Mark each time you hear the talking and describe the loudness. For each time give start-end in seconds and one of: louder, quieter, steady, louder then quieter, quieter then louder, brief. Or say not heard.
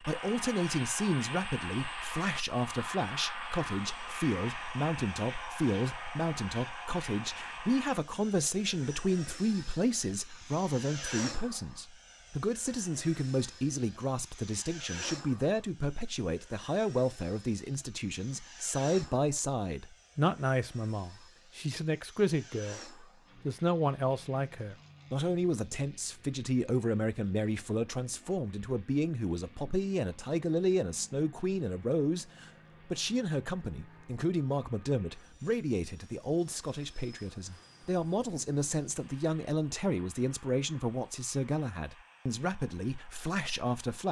0.0-44.0 steady.